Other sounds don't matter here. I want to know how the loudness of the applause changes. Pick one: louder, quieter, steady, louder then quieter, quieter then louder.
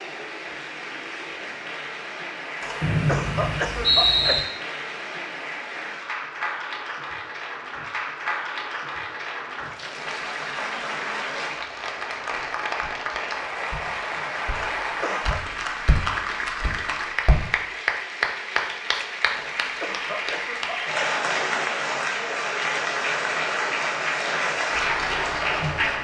louder.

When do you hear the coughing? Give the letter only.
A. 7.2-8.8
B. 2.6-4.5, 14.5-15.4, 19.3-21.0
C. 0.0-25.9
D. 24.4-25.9
B.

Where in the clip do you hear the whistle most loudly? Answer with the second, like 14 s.
4 s.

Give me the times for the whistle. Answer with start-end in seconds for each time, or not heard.
2.8-4.4.